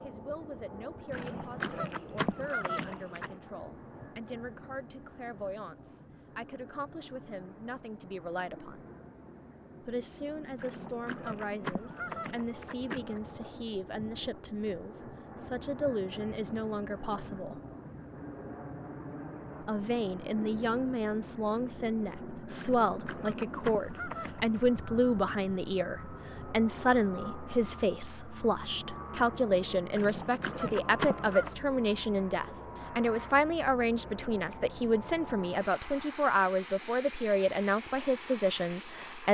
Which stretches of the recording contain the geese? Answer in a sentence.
You can hear the geese from 1.1 to 3.4 s, from 10.6 to 13.2 s, from 22.6 to 24.7 s and from 29.9 to 31.6 s.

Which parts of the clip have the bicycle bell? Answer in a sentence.
You can't hear the bicycle bell here.